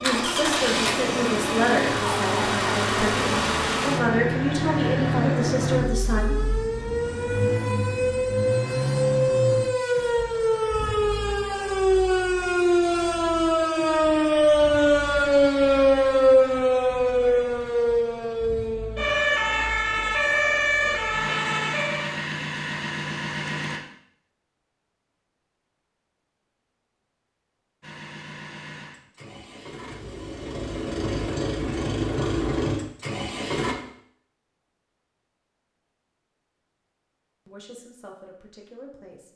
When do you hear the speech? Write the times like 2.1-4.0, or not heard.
0.0-6.3, 37.5-39.3.